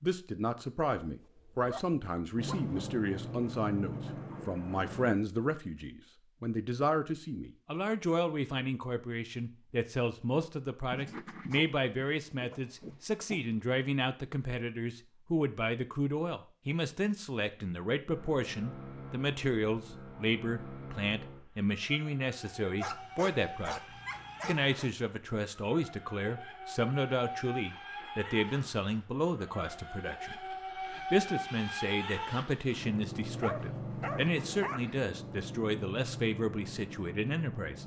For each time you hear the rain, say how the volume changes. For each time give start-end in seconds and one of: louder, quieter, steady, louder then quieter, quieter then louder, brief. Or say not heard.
not heard.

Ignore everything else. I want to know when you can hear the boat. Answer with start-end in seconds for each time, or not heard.
2.4-5.1, 18.1-37.8.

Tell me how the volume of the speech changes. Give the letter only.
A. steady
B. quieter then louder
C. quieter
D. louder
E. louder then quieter
A.